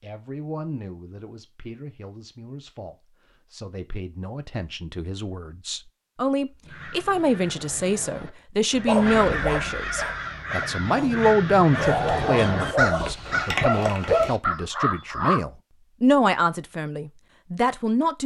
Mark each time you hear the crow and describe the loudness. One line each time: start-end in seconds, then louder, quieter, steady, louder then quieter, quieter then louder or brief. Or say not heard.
6.7-15.4 louder.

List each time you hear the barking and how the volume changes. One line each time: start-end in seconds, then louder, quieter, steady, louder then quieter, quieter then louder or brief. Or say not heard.
8.8-14.3 quieter then louder.